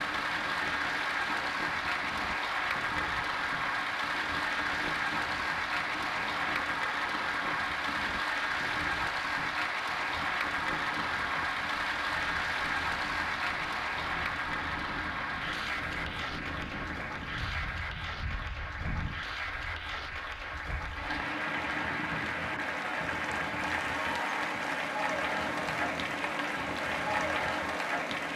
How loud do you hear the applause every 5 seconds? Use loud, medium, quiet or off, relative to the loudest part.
loud, loud, loud, medium, loud, loud.